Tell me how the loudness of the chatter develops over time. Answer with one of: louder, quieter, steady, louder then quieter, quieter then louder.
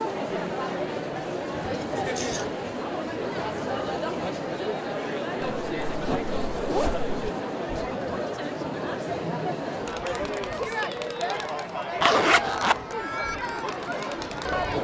steady.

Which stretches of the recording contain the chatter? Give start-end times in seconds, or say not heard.
0.0-14.7.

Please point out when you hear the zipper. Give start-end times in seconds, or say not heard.
1.7-2.6, 5.4-7.2, 12.0-12.8.